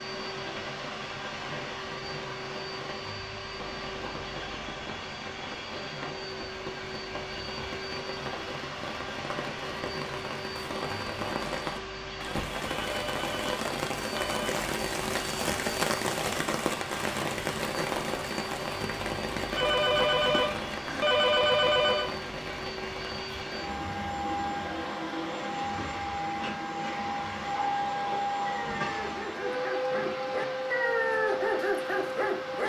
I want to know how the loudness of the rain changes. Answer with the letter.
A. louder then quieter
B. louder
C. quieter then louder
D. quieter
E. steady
A.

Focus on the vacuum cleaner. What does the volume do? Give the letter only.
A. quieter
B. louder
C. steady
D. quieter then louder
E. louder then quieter
B.